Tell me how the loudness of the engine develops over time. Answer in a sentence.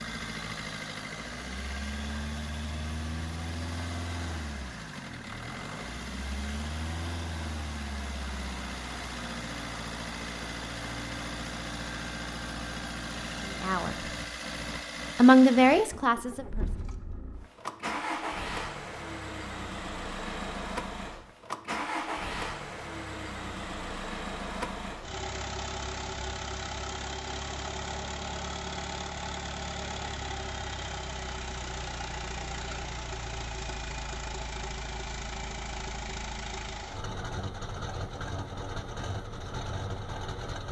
The loudness of the engine stays about the same.